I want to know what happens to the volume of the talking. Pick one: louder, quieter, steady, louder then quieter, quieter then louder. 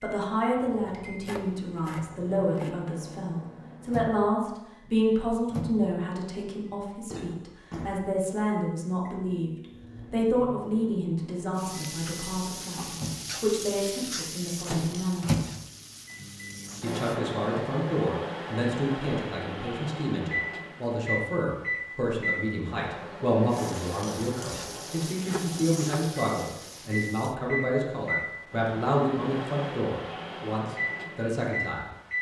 steady.